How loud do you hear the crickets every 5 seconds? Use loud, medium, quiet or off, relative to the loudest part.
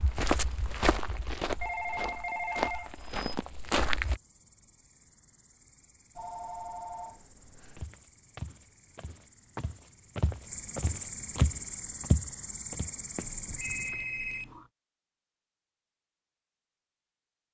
quiet, quiet, loud, off.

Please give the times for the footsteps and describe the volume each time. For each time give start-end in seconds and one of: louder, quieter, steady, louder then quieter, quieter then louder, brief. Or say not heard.
0.0-4.2 quieter then louder
7.8-14.1 louder then quieter.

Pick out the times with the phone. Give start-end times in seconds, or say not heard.
1.6-3.2, 6.2-7.8, 13.2-14.7.